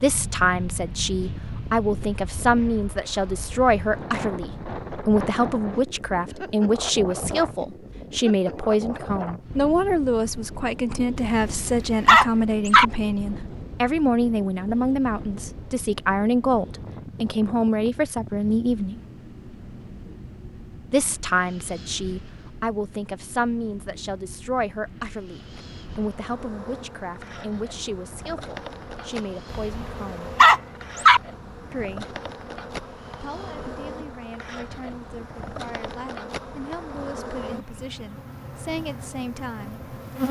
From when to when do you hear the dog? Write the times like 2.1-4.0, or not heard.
11.2-12.8, 29.6-31.2.